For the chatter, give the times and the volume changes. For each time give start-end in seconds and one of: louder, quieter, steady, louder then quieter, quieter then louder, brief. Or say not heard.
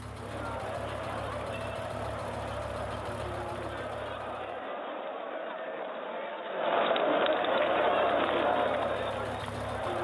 0.0-9.9 louder.